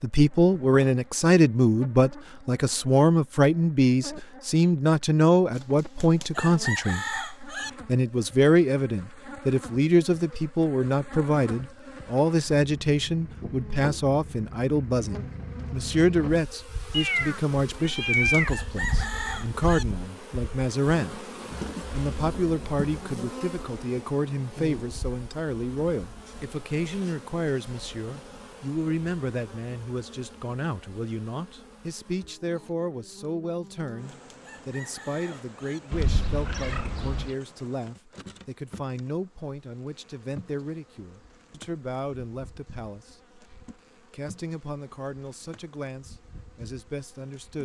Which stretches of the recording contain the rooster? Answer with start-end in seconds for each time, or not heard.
5.5-7.7, 17.9-19.9, 33.6-35.8.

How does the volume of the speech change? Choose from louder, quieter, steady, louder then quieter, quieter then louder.
quieter.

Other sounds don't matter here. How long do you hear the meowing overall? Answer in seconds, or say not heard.
3 s.